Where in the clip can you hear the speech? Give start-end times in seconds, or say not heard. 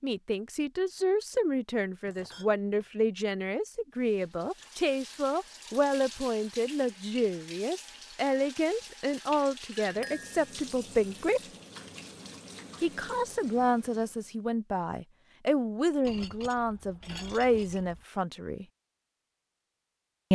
0.0-11.4, 12.8-18.6.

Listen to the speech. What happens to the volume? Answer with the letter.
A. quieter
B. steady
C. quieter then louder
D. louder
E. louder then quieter
B.